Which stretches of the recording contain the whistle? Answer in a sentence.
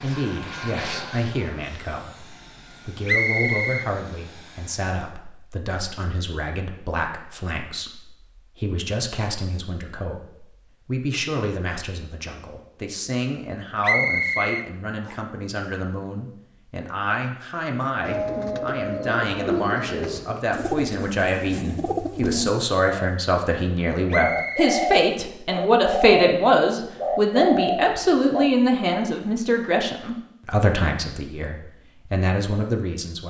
The whistle can be heard from 3.0 to 3.9 s, from 13.8 to 15.2 s and from 24.1 to 24.8 s.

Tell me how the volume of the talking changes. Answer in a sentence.
The loudness of the talking goes up.